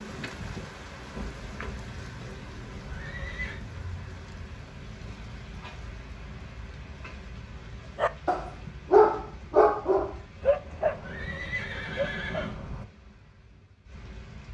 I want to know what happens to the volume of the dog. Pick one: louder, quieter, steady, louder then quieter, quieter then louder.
quieter.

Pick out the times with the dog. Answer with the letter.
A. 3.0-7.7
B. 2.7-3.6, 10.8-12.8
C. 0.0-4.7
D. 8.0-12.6
D.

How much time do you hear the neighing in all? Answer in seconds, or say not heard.
3 s.